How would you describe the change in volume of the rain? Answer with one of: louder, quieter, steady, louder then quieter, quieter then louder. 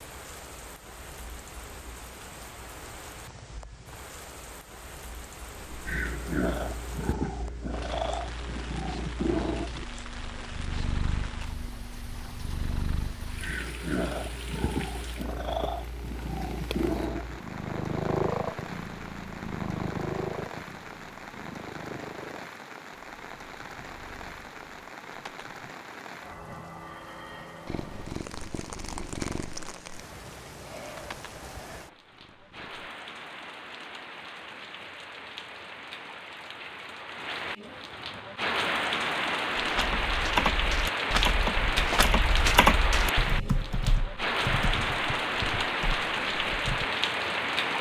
louder.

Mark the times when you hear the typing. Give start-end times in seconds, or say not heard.
39.5-46.9.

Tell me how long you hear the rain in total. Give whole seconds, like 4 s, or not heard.
48 s.